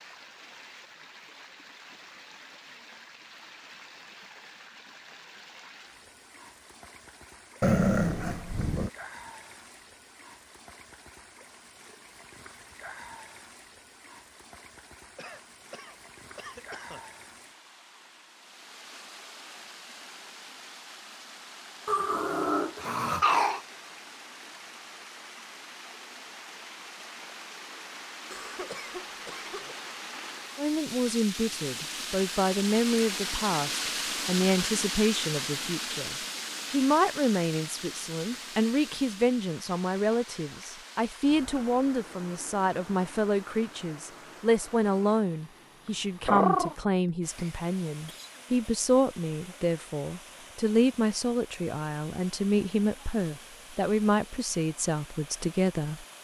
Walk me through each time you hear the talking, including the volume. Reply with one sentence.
The talking can be heard from 30.6 to 56.0 s, at a steady volume.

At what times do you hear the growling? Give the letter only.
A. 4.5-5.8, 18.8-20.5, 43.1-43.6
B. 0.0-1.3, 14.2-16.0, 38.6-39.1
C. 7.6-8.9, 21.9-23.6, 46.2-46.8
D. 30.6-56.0
C.